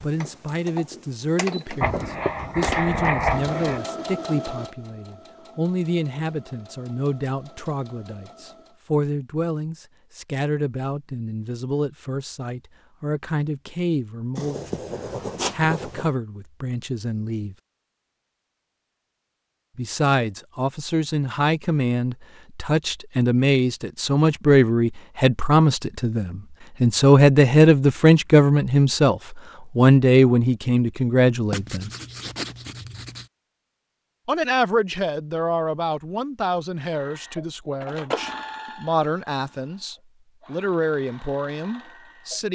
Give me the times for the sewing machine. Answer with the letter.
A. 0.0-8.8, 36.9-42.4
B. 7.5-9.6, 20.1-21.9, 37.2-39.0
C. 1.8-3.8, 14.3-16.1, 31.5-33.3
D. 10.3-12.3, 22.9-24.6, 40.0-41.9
A.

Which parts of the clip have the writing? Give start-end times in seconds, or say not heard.
1.8-3.8, 14.3-16.1, 31.5-33.3.